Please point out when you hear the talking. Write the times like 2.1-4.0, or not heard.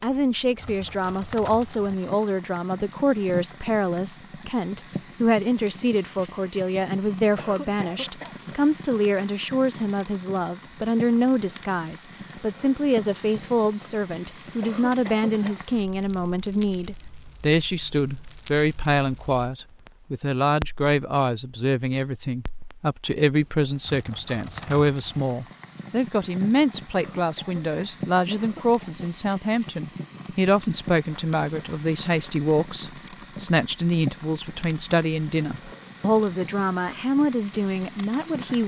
0.0-38.6.